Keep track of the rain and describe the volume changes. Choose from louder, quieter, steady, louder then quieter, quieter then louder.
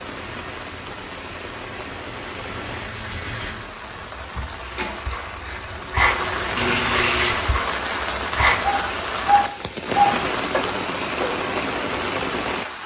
louder.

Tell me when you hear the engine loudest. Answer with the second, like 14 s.
3 s.